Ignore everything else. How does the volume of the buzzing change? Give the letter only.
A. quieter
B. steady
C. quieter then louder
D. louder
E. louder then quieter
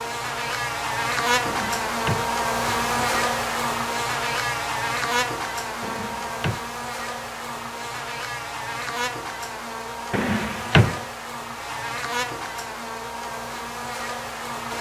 A.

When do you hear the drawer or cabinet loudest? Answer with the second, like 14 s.
11 s.